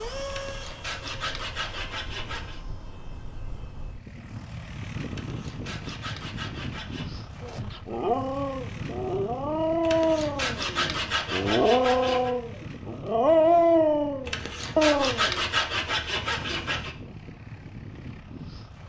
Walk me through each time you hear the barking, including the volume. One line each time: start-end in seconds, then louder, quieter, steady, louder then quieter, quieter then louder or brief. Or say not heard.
7.4-15.4 louder.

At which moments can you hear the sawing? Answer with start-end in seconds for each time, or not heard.
0.2-2.6, 5.1-7.0, 9.8-12.3, 14.2-16.9.